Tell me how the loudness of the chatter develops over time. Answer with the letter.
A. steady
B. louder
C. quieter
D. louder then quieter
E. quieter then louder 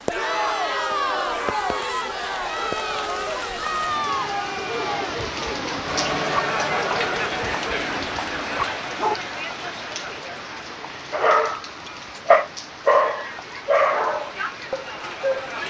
C.